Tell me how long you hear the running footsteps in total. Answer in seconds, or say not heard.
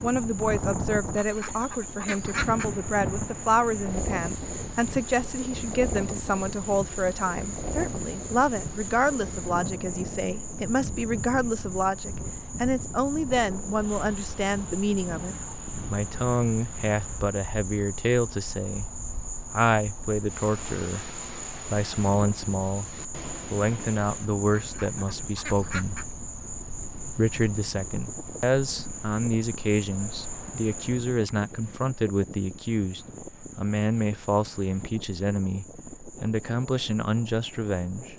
not heard.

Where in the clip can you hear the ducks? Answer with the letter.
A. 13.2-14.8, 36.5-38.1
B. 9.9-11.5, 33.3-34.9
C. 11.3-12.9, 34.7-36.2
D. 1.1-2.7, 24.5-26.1
D.